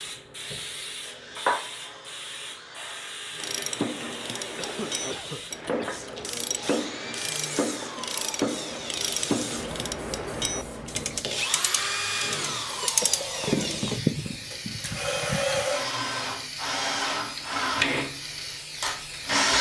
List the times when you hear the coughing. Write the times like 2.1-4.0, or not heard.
4.5-5.9, 12.7-14.0.